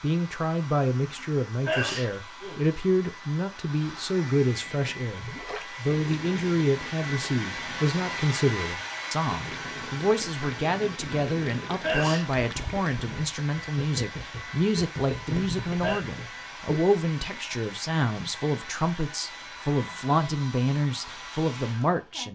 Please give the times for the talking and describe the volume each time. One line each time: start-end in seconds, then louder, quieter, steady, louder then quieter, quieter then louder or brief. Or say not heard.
0.0-22.3 steady.